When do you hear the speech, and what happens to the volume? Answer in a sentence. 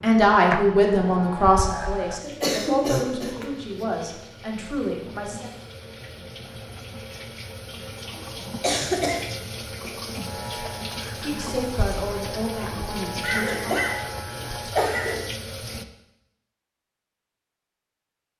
The speech can be heard from 0.0 to 5.5 s, getting quieter; and briefly from 11.2 to 13.8 s.